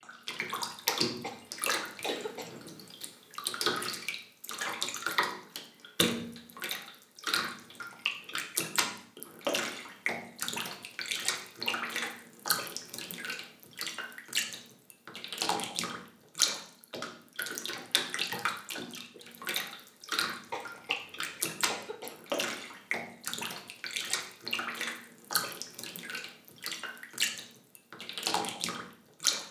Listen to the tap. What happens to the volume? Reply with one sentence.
The loudness of the tap stays about the same.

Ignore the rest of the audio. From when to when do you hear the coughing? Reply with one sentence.
You can hear the coughing from 0.8 to 2.5 s, from 11.7 to 12.2 s and from 20.5 to 22.1 s.